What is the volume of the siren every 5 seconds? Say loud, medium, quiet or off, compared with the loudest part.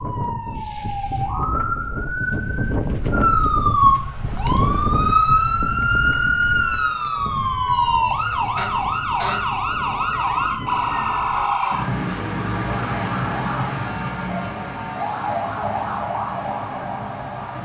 loud, loud, loud, medium.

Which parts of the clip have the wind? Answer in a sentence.
The wind can be heard from 0.0 to 11.7 s.